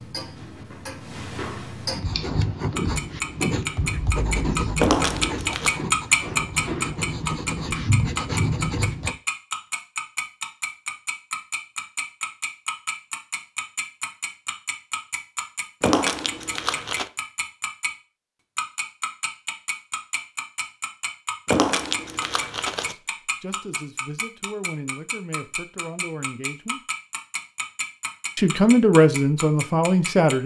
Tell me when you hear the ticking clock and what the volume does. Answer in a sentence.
You can hear the ticking clock from 0.0 to 17.9 s, getting louder then quieter; and from 18.6 to 30.4 s, at a steady volume.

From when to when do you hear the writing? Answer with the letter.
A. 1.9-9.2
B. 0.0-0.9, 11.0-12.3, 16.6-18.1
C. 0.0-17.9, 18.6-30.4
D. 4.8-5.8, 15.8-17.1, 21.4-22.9
A.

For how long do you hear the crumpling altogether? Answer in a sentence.
You can hear the crumpling for 4 seconds altogether.